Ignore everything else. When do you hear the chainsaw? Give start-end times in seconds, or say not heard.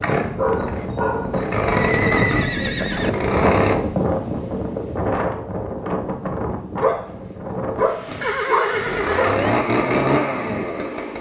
0.0-3.8, 8.1-11.1.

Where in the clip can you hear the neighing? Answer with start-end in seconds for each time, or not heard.
1.9-3.1, 8.2-9.5.